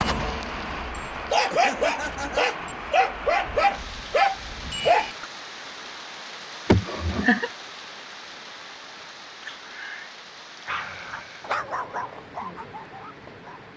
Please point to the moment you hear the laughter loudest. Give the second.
7 s.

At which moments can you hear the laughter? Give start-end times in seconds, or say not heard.
1.0-2.5, 6.7-7.5, 10.7-11.5.